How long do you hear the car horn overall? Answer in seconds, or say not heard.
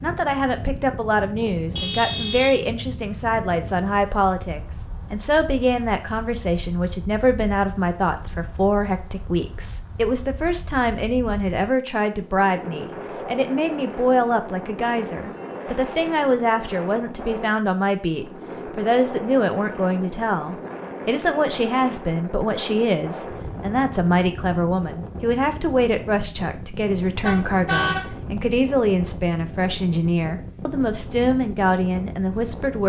2 s.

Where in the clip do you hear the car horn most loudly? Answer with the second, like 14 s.
28 s.